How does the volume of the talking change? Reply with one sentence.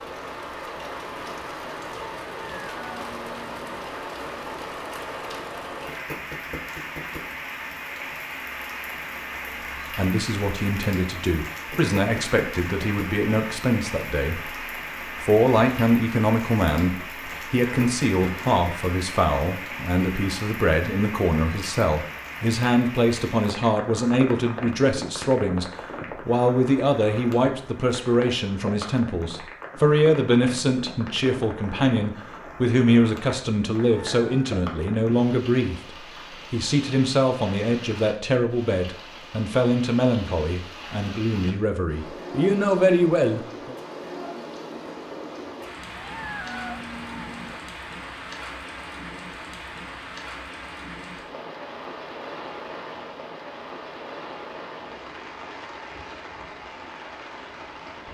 The loudness of the talking stays about the same.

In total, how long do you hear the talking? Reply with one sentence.
The talking can be heard for 33 seconds in total.